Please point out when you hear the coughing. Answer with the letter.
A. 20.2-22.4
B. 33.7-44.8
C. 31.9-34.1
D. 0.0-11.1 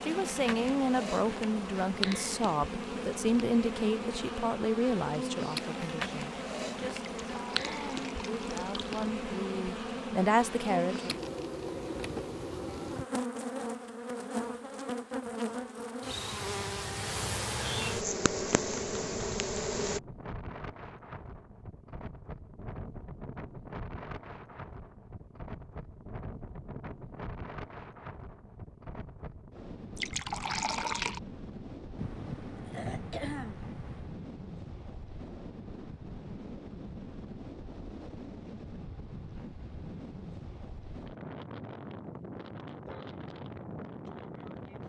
C.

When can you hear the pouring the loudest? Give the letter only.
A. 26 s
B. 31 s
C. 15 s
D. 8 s
B.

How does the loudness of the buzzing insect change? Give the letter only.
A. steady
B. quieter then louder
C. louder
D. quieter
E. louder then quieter
A.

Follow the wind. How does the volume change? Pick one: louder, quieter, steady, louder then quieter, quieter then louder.
steady.